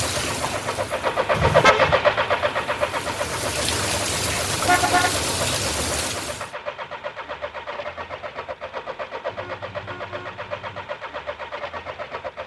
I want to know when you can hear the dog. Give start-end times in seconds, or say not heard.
not heard.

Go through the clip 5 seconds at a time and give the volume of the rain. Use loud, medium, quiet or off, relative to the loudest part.
loud, loud, off.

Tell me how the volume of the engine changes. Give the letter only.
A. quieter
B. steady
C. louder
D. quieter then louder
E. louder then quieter
A.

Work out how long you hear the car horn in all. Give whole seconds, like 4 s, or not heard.
3 s.